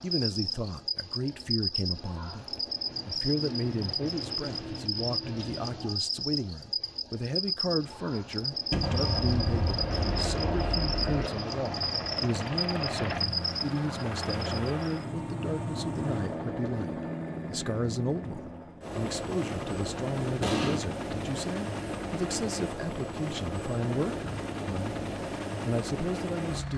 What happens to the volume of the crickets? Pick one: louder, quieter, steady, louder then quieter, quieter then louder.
steady.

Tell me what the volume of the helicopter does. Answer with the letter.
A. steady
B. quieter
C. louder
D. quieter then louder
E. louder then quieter
A.